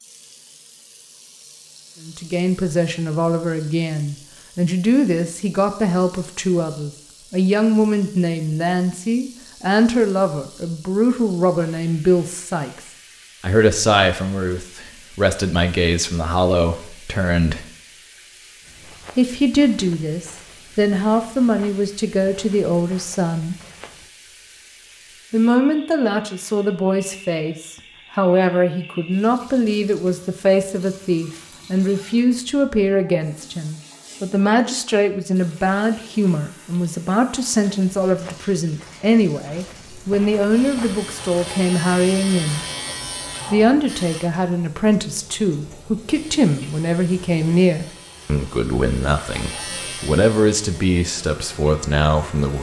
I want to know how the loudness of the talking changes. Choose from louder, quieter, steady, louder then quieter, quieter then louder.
steady.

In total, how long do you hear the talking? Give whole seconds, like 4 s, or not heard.
46 s.